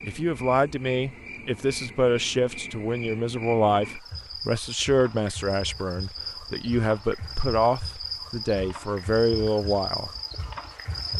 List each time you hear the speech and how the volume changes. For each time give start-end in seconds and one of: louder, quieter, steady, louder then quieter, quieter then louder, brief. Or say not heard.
0.0-10.1 steady.